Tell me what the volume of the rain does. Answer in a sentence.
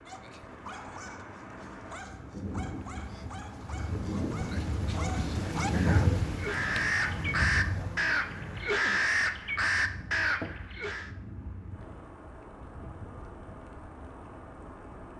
The loudness of the rain goes up, then down.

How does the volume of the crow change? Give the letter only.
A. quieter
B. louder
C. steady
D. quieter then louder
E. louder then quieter
C.